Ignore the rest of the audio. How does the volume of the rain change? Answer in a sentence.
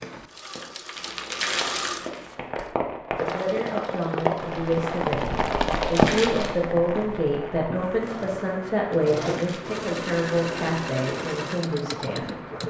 The loudness of the rain goes up, then down.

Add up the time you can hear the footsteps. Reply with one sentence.
The footsteps can't be heard in this clip.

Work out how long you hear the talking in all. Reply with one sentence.
You can hear the talking for 9 seconds altogether.